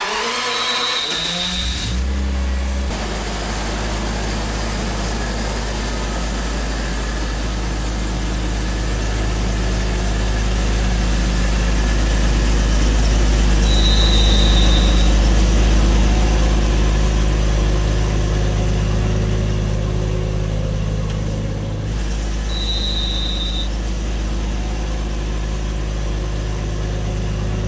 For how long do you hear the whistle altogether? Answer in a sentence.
You can hear the whistle for 4 seconds altogether.